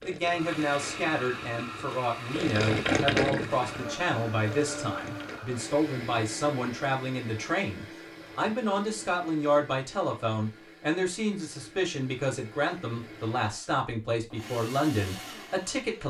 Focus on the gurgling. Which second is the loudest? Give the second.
3 s.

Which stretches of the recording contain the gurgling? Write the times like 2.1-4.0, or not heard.
0.0-5.4.